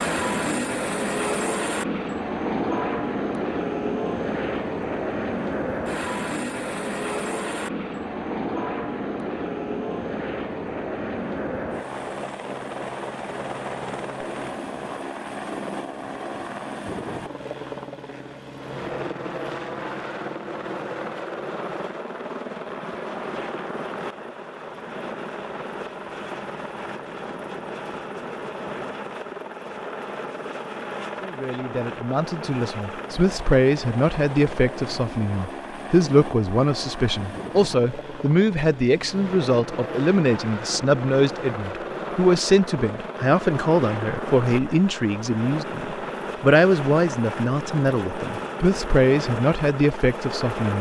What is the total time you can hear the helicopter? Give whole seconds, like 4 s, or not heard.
51 s.